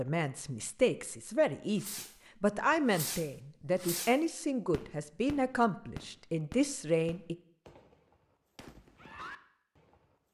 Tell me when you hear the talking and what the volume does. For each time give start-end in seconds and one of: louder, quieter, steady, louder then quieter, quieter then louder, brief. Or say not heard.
0.0-7.3 steady.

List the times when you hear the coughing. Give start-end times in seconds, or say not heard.
not heard.